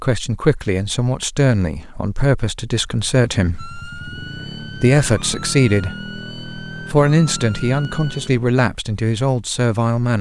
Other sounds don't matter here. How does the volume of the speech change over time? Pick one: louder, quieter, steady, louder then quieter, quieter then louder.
steady.